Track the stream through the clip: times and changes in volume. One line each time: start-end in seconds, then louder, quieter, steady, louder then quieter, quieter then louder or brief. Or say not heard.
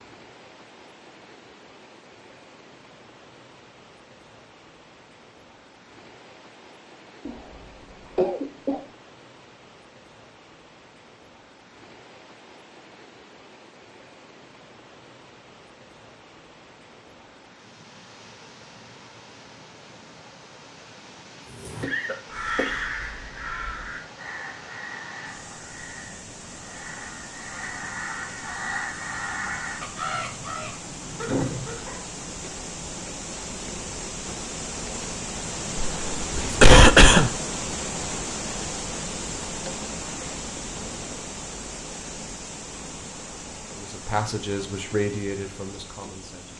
0.0-46.5 louder.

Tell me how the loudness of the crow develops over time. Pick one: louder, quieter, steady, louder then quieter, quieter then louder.
quieter then louder.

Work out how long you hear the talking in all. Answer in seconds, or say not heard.
3 s.